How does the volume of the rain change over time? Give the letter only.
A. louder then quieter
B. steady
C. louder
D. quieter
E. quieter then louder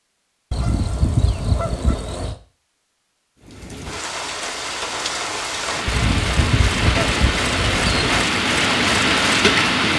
C.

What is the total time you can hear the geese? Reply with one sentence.
The geese can be heard for 4 seconds in total.